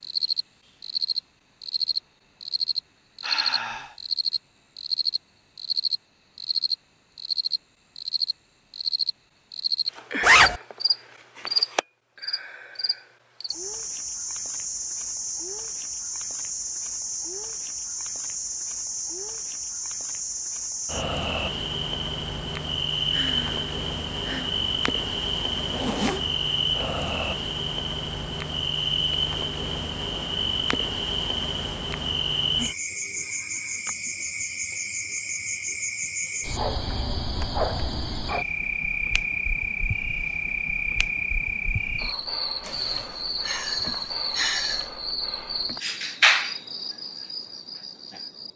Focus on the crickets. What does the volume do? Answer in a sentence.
The loudness of the crickets stays about the same.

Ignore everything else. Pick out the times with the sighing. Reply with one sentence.
The sighing can be heard from 3.2 to 4.0 s, from 23.1 to 24.6 s and from 42.6 to 44.9 s.